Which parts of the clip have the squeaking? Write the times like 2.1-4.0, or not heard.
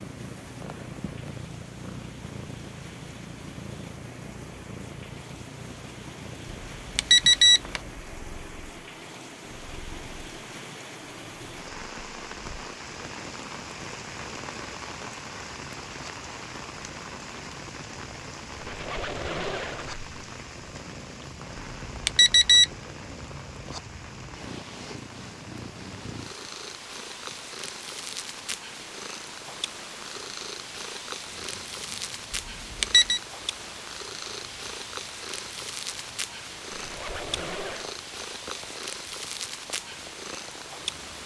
7.5-8.0, 18.6-20.1, 36.7-38.0.